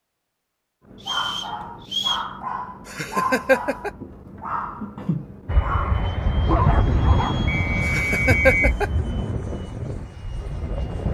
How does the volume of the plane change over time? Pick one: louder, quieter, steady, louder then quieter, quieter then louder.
quieter.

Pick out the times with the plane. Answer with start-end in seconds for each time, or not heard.
5.5-11.0.